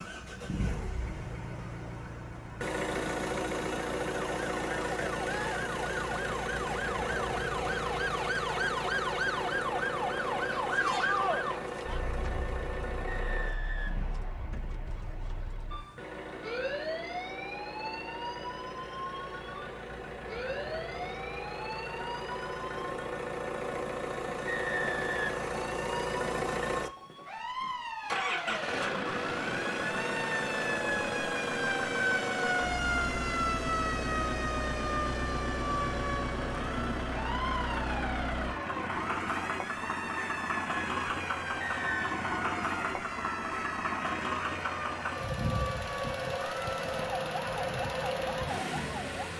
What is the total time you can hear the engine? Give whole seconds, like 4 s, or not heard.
49 s.